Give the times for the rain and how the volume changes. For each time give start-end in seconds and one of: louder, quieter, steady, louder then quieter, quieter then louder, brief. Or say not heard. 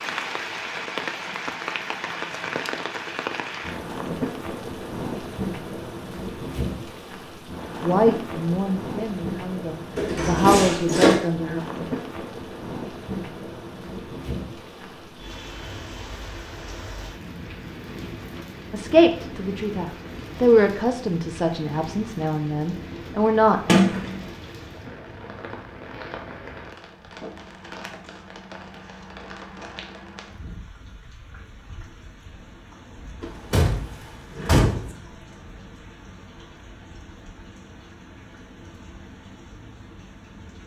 0.0-40.6 quieter.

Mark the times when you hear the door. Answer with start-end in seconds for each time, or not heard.
9.9-11.2, 23.6-24.1, 33.2-34.9.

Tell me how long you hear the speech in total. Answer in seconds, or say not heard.
9 s.